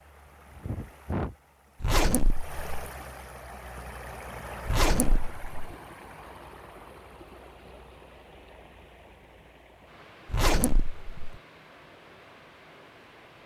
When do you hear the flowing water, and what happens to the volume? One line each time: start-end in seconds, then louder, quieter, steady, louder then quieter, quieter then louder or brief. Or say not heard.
0.0-13.4 quieter.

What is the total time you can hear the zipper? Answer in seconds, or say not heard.
3 s.